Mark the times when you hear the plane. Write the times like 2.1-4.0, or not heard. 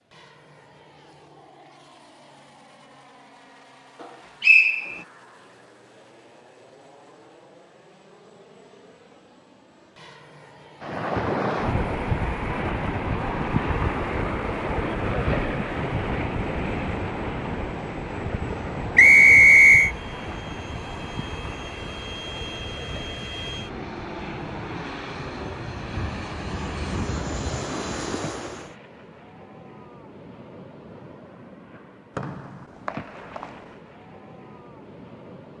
0.0-28.8.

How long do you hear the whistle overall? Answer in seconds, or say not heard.
3 s.